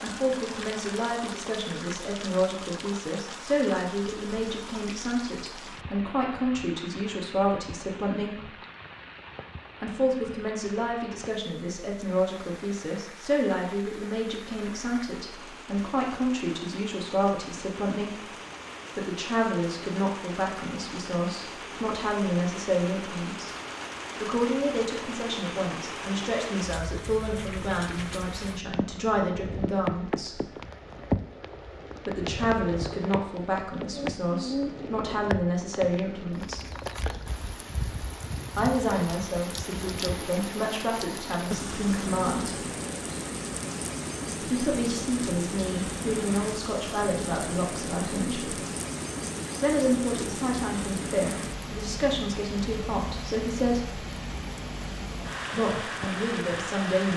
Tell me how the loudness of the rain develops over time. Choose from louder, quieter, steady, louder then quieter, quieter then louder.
louder.